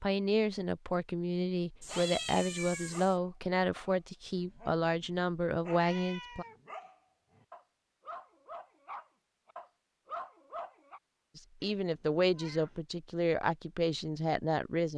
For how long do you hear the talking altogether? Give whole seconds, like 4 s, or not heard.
10 s.